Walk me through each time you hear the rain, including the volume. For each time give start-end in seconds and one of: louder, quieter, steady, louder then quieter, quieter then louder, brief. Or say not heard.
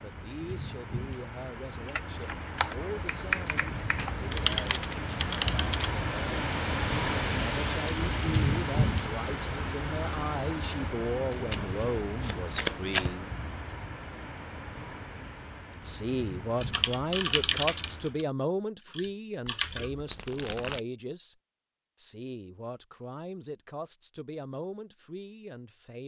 0.0-18.2 louder then quieter.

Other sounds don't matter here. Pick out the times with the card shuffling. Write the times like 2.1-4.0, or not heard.
4.0-5.9, 11.5-13.2, 19.4-20.8.